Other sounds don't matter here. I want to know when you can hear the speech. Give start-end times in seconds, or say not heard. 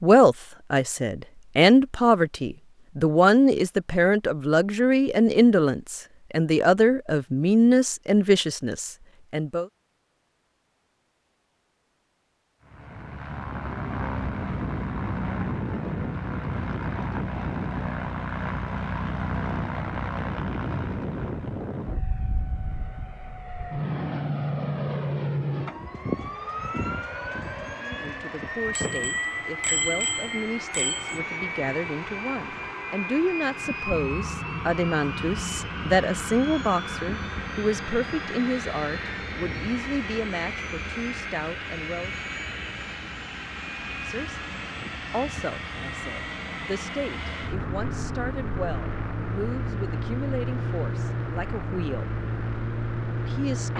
0.0-9.7, 27.8-42.1, 43.8-44.4, 45.1-52.1, 53.2-53.7.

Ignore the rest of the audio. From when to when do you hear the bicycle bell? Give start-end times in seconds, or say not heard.
28.8-31.2.